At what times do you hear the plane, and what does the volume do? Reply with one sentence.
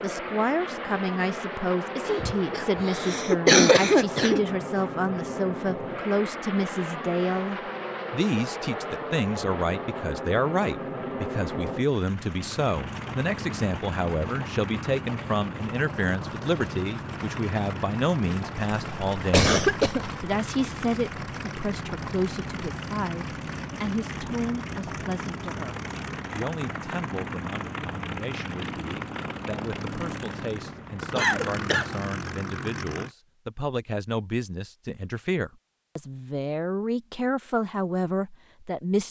The plane can be heard from 0.0 to 33.1 s, at a steady volume.